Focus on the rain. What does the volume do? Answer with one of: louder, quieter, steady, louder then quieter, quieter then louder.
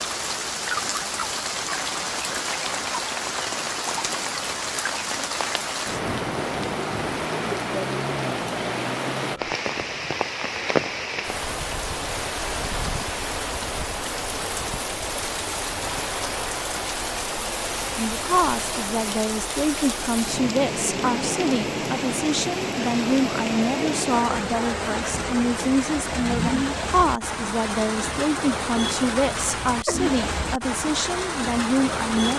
steady.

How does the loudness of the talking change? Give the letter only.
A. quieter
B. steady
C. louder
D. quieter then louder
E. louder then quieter
B.